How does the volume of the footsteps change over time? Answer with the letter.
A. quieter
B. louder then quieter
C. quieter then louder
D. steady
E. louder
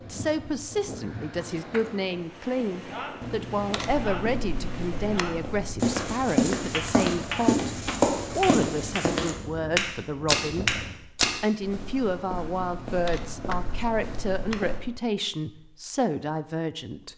A.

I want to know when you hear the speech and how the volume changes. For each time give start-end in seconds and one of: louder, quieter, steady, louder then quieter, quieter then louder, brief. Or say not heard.
0.1-7.6 steady
8.3-17.1 steady.